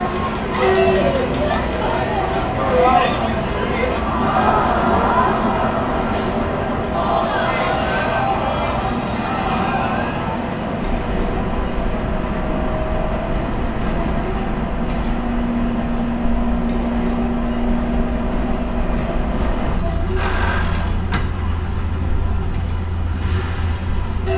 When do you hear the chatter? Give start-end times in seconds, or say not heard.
0.0-24.3.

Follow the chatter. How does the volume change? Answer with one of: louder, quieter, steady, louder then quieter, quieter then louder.
quieter.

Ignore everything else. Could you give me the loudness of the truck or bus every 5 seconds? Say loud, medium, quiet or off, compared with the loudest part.
loud, loud, loud, loud, medium.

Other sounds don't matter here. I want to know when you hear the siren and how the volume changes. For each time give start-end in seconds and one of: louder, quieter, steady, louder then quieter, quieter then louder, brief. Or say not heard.
not heard.